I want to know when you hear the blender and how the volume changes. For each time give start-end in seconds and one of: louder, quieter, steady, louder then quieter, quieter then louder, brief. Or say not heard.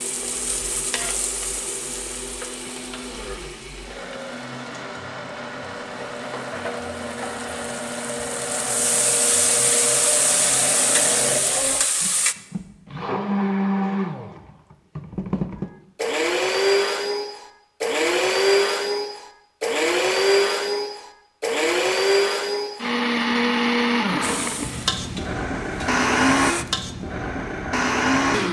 0.0-28.4 louder.